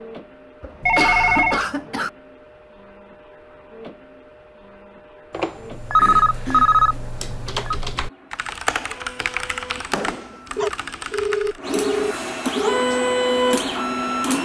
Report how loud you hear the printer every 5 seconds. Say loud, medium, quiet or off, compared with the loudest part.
quiet, quiet, loud.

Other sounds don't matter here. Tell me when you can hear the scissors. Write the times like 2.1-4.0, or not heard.
not heard.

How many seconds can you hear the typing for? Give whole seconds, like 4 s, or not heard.
6 s.